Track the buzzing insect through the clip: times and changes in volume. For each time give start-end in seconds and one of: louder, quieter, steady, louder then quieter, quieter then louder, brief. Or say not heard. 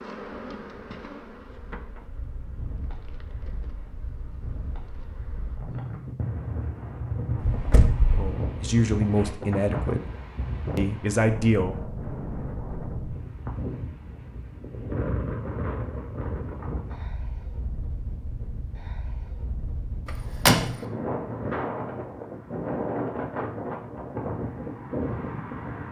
0.0-5.7 quieter.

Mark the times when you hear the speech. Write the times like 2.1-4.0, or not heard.
8.2-10.1, 10.8-11.8.